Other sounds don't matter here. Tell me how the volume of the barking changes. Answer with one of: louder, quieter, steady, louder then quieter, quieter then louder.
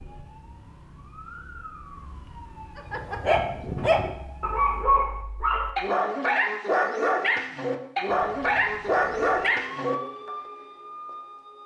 steady.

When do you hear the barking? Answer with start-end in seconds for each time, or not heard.
2.8-10.3.